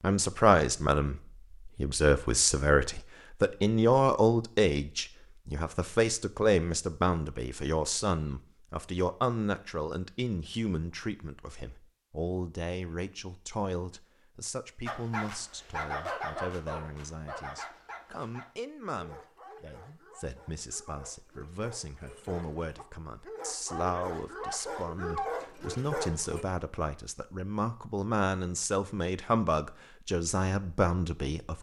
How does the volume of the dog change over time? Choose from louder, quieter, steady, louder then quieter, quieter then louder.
quieter then louder.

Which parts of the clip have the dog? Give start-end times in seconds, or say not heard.
14.8-26.4.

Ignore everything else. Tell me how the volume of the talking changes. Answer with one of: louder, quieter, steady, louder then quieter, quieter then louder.
quieter then louder.